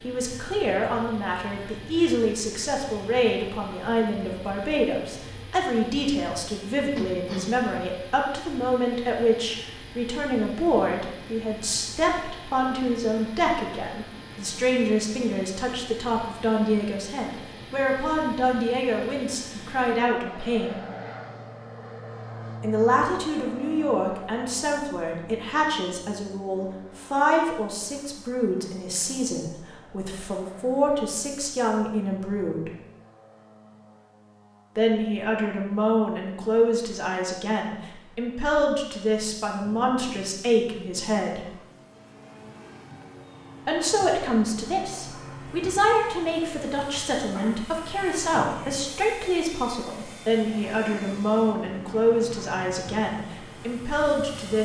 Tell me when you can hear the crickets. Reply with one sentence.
You can't hear the crickets here.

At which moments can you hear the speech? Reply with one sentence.
You can hear the speech from 0.0 to 20.8 s, from 22.6 to 32.7 s, from 34.8 to 41.5 s and from 43.6 to 54.6 s.